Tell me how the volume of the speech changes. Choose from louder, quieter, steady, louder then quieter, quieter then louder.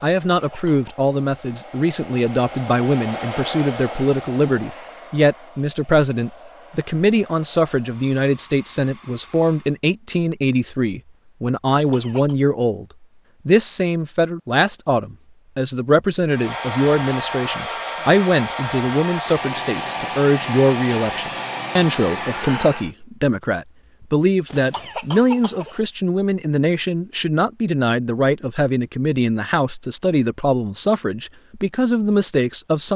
steady.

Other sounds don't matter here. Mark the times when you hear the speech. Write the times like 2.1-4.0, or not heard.
0.0-12.8, 13.4-32.9.